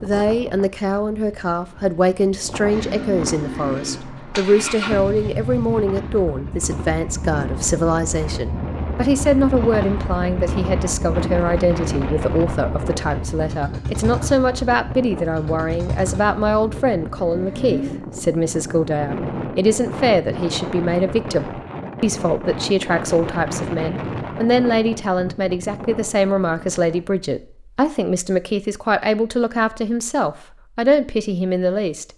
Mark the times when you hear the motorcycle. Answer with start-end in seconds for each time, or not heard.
2.7-17.9.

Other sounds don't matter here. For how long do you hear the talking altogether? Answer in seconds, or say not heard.
32 s.